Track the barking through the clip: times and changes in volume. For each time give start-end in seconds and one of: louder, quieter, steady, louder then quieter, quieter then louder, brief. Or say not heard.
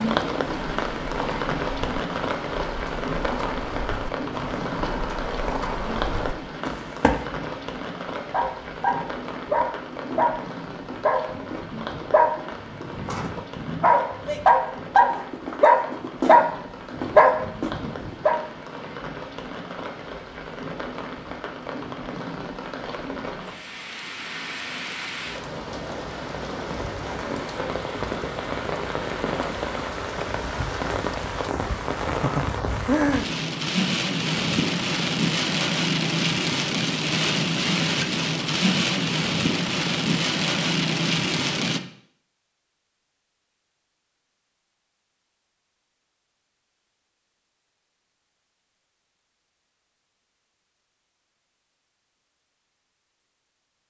8.2-18.4 louder.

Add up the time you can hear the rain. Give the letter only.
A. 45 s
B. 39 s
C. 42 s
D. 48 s
C.